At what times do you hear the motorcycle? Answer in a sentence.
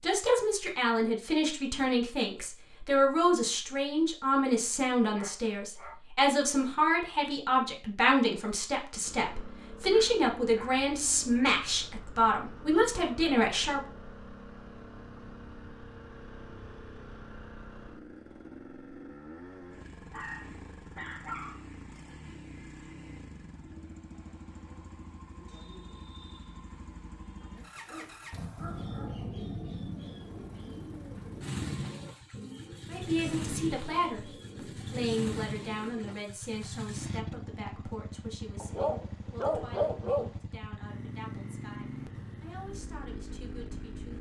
You can hear the motorcycle from 9.1 to 44.1 s.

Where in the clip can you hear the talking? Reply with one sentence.
You can hear the talking from 0.0 to 13.8 s and from 32.9 to 44.1 s.